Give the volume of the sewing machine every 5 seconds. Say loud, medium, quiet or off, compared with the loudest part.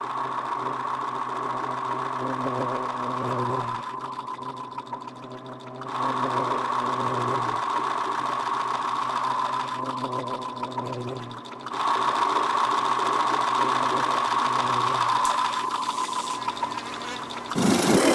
medium, loud, loud, loud.